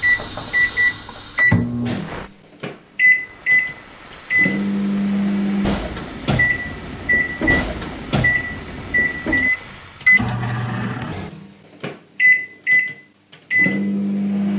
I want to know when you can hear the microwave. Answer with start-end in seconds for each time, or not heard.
0.0-14.5.